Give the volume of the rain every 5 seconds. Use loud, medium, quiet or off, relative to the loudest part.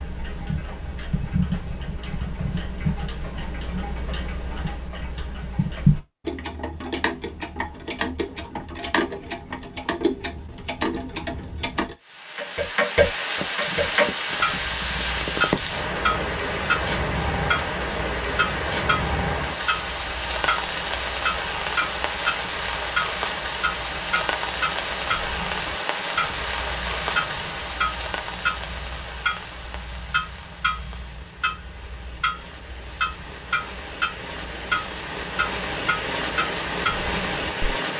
off, off, loud, loud, loud, loud, quiet, loud.